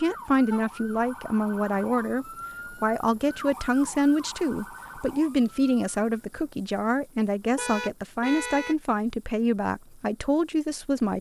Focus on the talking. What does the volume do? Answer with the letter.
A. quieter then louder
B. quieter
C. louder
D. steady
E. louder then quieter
D.